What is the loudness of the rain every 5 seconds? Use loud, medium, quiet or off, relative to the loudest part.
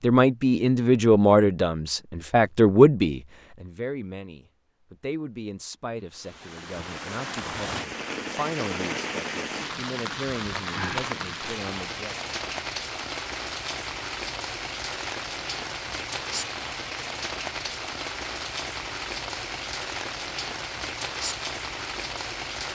off, loud, loud, loud, loud.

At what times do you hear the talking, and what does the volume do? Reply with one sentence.
The talking can be heard from 0.0 to 12.3 s, getting quieter.